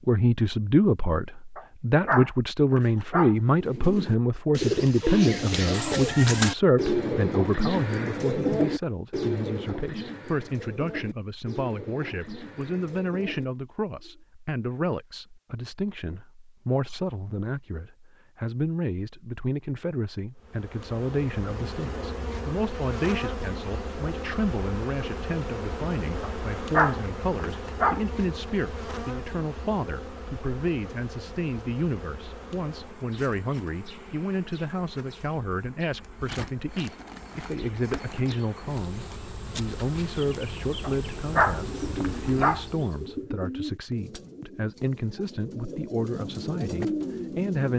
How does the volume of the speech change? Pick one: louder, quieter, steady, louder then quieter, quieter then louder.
quieter.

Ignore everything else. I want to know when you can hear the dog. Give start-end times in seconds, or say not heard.
1.6-3.4, 26.2-28.0, 40.8-42.6.